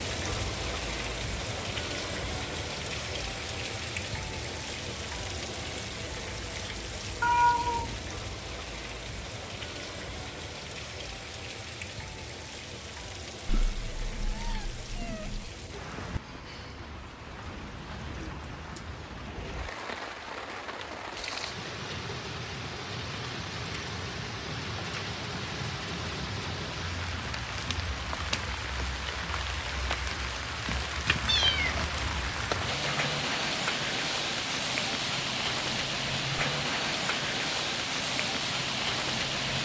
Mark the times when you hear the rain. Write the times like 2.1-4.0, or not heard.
0.0-39.6.